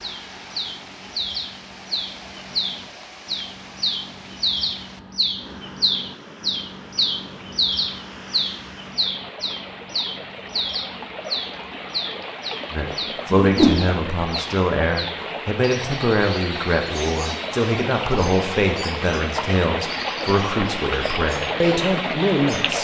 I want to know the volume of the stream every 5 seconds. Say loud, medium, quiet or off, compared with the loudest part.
quiet, quiet, medium, loud, loud.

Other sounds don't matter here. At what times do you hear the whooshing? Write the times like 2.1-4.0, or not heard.
13.3-13.8.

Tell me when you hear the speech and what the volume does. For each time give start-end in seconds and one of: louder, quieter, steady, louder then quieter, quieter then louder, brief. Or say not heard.
12.7-22.7 steady.